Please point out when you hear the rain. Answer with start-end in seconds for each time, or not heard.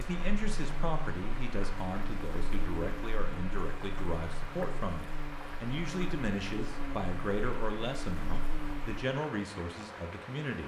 0.0-10.6.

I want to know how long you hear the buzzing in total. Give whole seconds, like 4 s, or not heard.
9 s.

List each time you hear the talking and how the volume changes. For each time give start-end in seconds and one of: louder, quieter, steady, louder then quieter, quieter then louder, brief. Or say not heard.
0.0-10.6 steady.